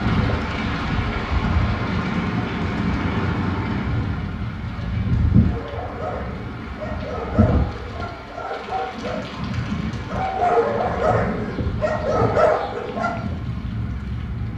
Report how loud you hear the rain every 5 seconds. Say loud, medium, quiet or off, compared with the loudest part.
loud, loud, medium.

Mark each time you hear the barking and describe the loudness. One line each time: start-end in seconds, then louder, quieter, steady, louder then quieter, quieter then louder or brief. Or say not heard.
5.5-13.3 louder.